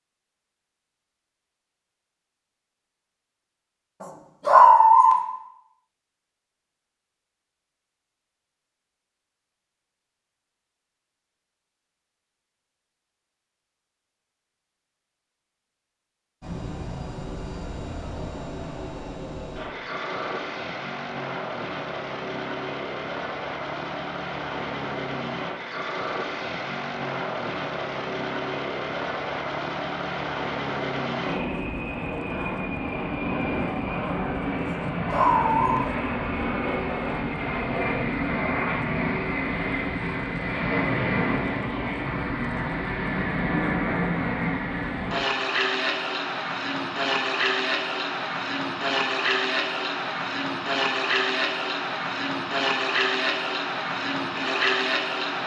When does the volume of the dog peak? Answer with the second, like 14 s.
5 s.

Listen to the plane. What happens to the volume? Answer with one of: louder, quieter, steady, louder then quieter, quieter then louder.
louder.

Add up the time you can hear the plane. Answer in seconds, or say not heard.
39 s.